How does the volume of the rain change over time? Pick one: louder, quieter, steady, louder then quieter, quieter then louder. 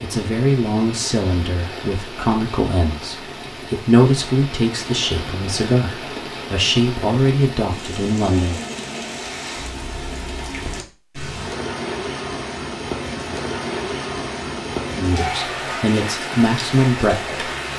louder.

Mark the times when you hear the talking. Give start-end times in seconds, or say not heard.
0.0-8.6, 14.9-17.4.